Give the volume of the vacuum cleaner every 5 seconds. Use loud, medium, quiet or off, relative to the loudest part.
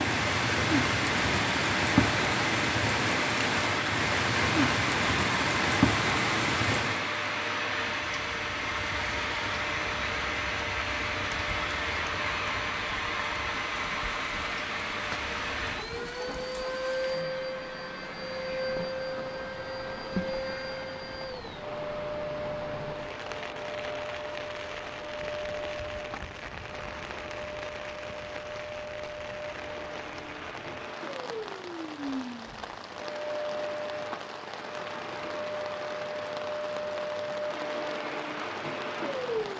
loud, loud, loud, loud, medium, medium, medium, loud.